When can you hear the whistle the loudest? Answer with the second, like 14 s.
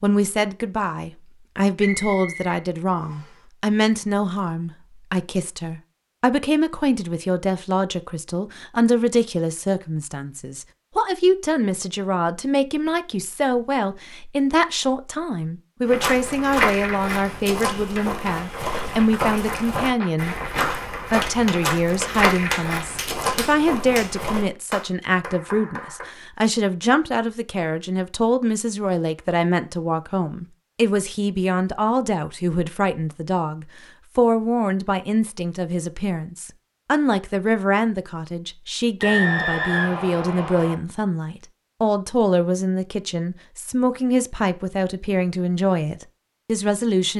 39 s.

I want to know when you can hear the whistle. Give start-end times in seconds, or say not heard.
1.8-3.4, 39.0-40.8.